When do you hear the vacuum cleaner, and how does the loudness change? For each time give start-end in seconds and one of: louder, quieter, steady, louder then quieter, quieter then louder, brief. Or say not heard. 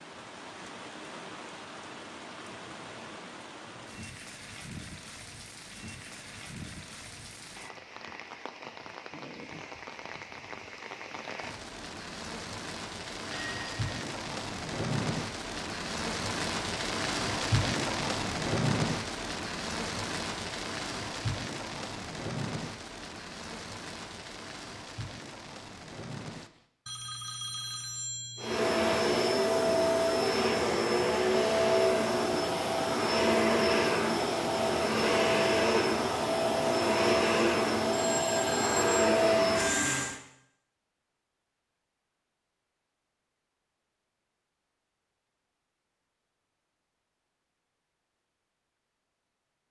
28.4-40.2 steady.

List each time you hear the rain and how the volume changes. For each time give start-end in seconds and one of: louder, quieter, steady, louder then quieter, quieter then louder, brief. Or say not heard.
0.0-26.6 louder then quieter.